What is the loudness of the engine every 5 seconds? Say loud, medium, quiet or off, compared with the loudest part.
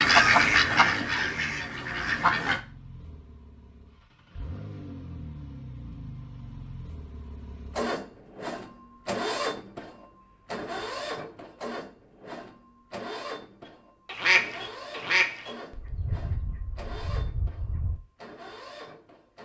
medium, loud, loud, medium.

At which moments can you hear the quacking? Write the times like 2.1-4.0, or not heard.
0.0-2.6, 14.1-18.0.